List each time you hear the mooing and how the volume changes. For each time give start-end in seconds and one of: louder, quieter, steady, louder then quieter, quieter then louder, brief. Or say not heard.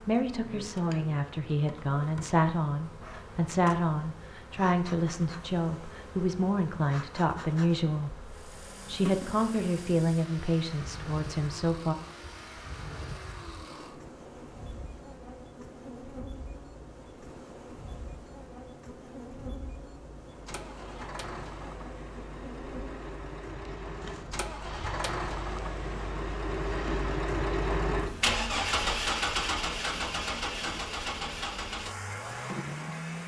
not heard.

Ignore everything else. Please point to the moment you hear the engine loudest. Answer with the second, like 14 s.
29 s.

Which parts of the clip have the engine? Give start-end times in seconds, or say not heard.
8.2-33.2.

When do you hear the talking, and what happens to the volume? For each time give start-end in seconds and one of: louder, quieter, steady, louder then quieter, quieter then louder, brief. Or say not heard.
0.1-11.9 steady.